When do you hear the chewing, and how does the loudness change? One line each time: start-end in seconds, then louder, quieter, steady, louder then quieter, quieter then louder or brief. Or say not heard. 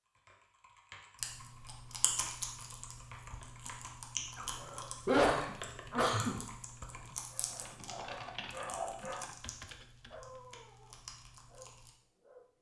1.1-11.9 quieter.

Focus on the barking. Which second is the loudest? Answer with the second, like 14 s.
9 s.